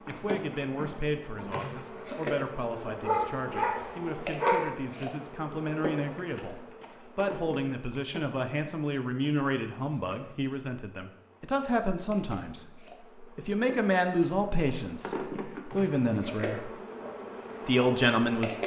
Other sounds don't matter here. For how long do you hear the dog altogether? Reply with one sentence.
The dog can be heard for 2 seconds in total.